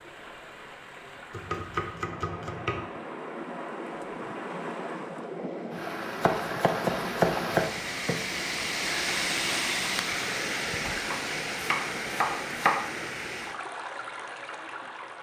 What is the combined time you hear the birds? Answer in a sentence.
The birds can't be heard in this clip.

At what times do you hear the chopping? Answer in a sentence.
The chopping can be heard from 1.3 to 2.9 s, from 6.2 to 8.2 s and from 10.8 to 12.8 s.